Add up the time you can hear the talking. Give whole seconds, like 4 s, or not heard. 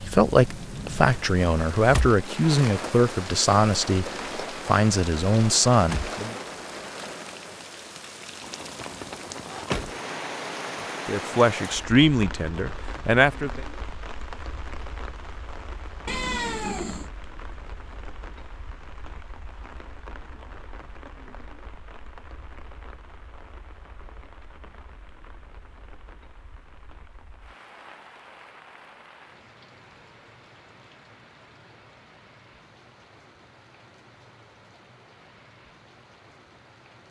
9 s.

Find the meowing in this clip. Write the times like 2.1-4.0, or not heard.
16.1-17.1.